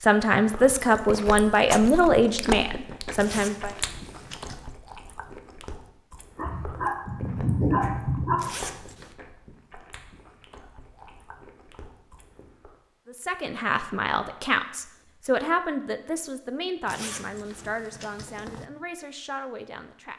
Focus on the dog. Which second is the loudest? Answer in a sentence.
The volume of the dog peaks at 8 seconds.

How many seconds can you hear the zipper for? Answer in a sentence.
The zipper can be heard for 4 seconds in total.